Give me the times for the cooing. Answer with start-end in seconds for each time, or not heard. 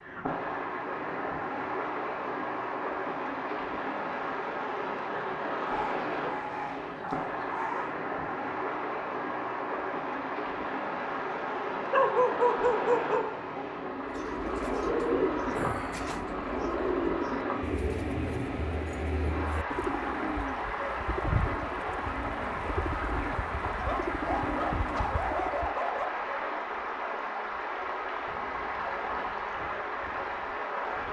13.9-25.8.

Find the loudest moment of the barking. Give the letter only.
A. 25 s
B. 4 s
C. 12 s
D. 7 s
C.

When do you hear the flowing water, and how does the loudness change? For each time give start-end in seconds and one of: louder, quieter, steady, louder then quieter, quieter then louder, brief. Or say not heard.
0.0-31.0 steady.